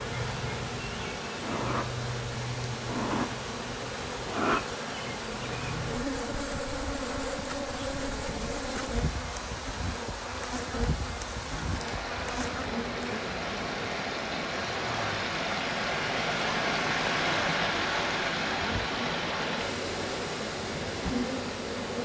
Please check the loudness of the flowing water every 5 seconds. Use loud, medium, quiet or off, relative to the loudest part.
medium, medium, medium, loud, medium.